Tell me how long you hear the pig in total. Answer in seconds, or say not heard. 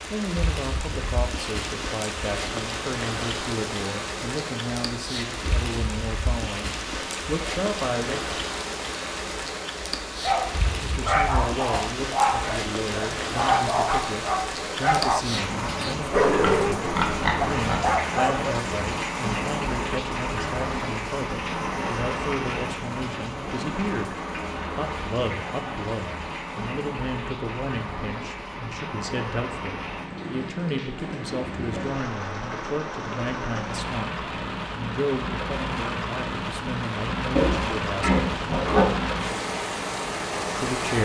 3 s.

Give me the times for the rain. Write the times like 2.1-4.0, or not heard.
0.0-41.0.